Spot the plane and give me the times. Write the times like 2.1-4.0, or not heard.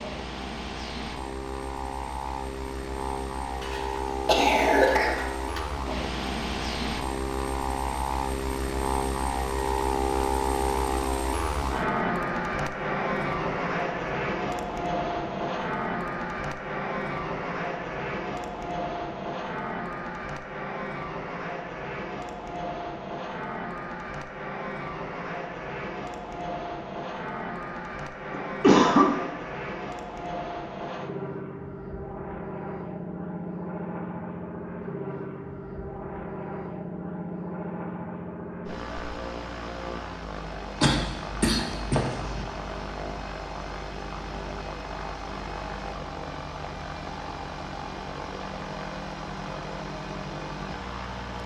0.0-51.4.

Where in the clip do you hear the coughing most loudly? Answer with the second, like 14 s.
29 s.